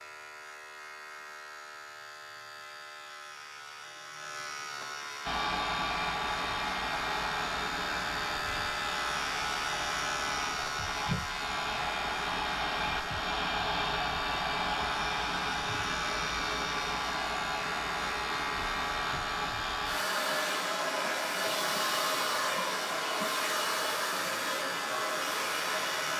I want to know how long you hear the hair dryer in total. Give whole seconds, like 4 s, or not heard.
21 s.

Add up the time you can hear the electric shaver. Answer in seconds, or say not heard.
26 s.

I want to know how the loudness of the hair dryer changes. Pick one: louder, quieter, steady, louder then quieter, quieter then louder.
steady.